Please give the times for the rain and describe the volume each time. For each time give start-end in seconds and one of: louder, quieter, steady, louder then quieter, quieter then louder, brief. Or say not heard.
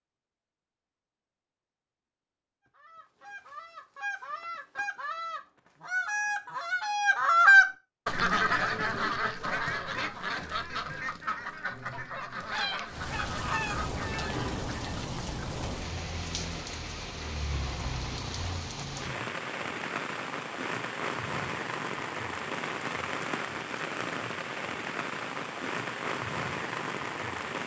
12.8-27.6 steady.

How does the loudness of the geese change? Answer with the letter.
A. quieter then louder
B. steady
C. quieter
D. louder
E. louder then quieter
E.